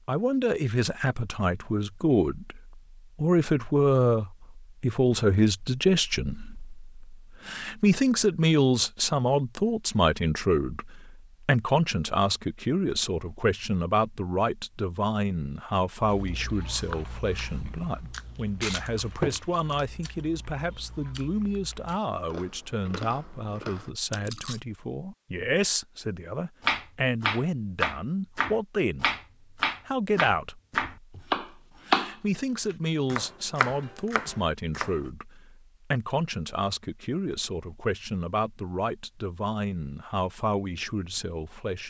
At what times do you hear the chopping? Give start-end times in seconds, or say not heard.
26.6-35.0.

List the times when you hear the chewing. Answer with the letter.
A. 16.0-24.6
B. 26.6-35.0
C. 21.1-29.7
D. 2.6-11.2
A.